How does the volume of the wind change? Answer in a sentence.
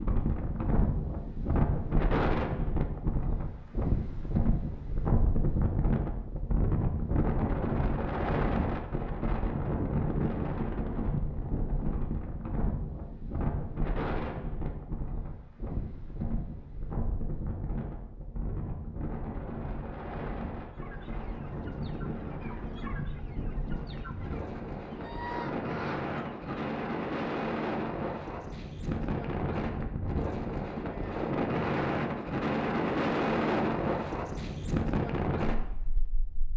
The volume of the wind goes down, then up.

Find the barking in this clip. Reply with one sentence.
The barking can't be heard in this clip.